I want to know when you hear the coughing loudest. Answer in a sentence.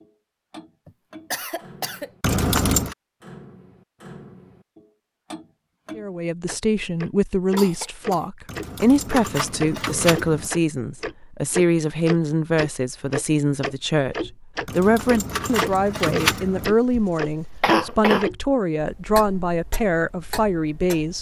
The volume of the coughing peaks at 18 seconds.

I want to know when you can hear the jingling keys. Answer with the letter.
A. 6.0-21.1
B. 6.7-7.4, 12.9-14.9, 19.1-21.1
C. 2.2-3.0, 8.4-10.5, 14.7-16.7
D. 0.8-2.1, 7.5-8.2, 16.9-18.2
C.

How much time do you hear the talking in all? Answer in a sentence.
You can hear the talking for 15 seconds altogether.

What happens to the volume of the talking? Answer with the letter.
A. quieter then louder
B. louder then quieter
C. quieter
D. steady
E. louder
D.